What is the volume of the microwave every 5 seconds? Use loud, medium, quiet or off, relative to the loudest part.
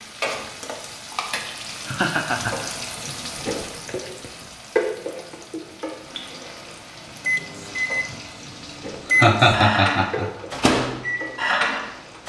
off, loud, loud.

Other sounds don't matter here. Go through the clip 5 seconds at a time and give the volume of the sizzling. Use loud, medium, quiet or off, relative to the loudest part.
loud, medium, medium.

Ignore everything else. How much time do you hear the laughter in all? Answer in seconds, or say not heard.
2 s.